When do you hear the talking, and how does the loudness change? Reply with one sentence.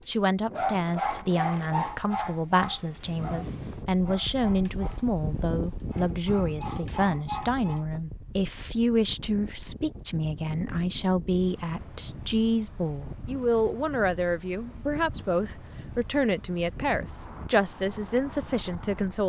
The talking can be heard from 0.1 to 19.2 s, at a steady volume.